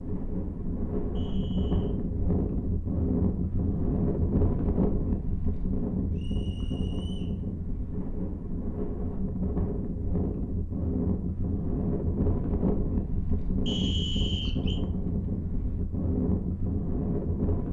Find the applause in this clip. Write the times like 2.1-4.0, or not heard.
not heard.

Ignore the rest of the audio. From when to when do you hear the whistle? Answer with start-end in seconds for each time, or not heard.
1.1-1.9, 6.2-7.3, 13.7-14.8.